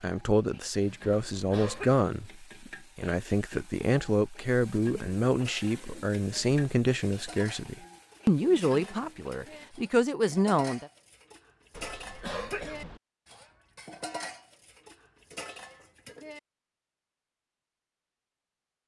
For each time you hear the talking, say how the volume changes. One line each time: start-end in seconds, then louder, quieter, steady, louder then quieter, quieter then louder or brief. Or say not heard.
0.0-10.9 steady.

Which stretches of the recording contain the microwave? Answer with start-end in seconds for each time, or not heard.
not heard.